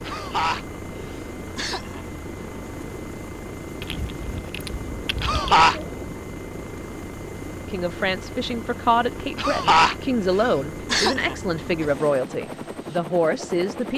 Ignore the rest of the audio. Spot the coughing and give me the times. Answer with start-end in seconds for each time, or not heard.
0.1-2.0, 5.2-5.8, 9.3-11.3.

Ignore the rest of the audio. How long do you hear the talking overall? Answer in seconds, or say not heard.
6 s.